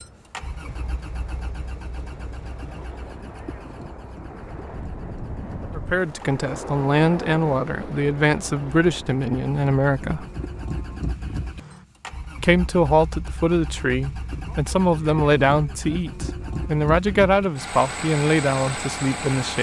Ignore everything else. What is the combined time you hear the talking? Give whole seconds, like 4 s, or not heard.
12 s.